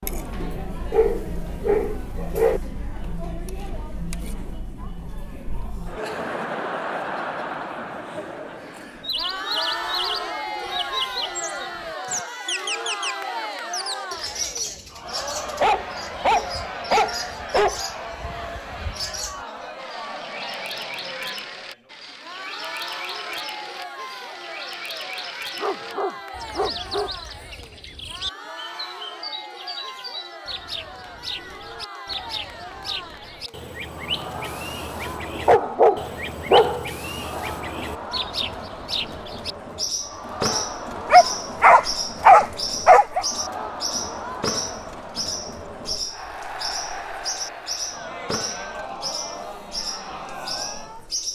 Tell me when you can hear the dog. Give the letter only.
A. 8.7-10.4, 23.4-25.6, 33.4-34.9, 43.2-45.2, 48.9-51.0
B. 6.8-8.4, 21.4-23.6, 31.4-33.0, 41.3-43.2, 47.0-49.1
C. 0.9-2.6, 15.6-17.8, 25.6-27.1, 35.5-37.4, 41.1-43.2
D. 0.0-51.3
C.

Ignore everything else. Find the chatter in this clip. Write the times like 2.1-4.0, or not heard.
0.0-51.3.